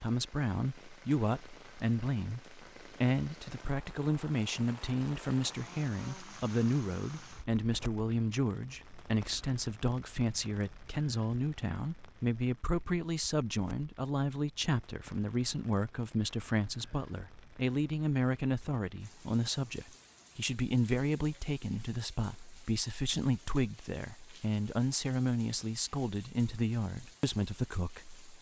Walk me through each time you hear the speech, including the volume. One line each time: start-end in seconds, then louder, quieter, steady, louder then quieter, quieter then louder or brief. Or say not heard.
0.0-28.2 steady.